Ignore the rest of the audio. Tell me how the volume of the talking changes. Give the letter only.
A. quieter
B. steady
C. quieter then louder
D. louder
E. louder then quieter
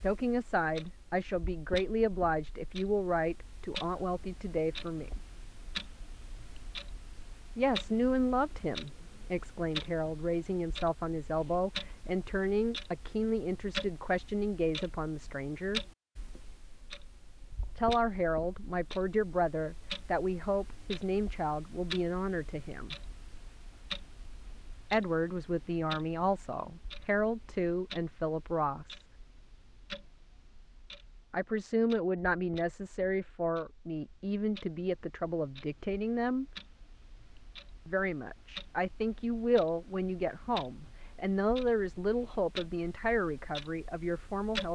B.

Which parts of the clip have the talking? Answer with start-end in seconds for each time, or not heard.
0.0-5.2, 7.5-15.8, 17.8-22.9, 24.9-29.1, 31.3-36.5, 37.9-44.6.